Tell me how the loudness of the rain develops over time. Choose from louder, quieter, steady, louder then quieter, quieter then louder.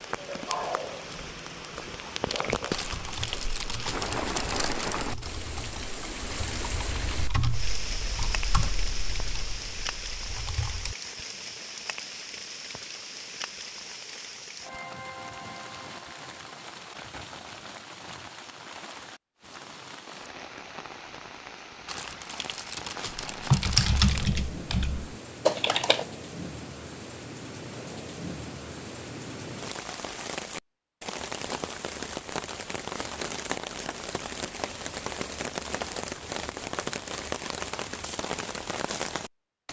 quieter then louder.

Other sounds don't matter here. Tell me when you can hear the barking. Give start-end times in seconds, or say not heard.
not heard.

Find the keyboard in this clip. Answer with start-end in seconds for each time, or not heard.
2.7-10.9, 23.1-26.1.